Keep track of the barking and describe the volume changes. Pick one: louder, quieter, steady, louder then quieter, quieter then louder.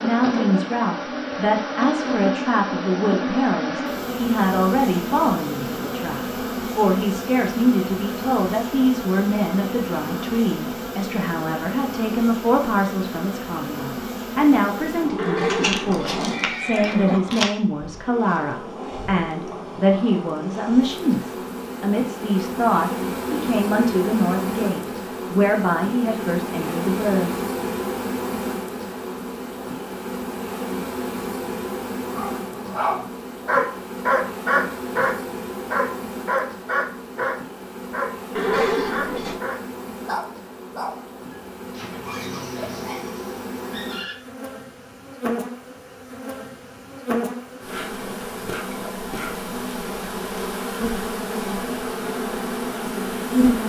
quieter.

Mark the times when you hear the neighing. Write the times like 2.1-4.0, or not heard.
15.2-17.2, 38.4-39.4.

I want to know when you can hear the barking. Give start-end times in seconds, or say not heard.
32.1-44.1.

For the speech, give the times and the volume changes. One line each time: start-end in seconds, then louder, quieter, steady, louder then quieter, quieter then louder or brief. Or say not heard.
0.0-27.4 steady.